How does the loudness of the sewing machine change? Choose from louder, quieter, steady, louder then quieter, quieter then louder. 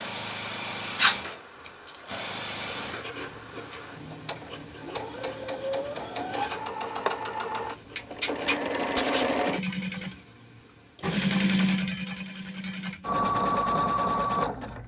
louder.